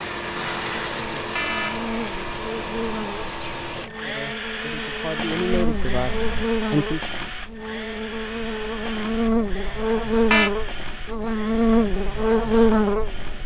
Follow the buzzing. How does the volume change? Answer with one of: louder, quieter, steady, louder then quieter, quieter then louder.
louder.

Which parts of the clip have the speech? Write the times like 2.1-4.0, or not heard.
4.0-7.0.